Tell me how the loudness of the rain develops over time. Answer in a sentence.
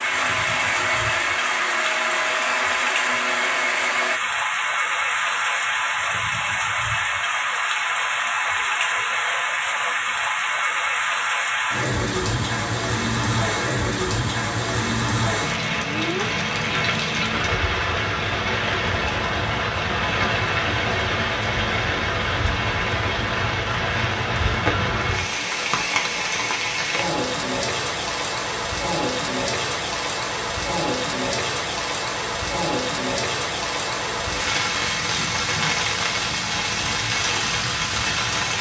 The loudness of the rain stays about the same.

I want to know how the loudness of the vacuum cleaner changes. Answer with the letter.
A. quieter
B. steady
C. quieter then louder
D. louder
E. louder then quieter
B.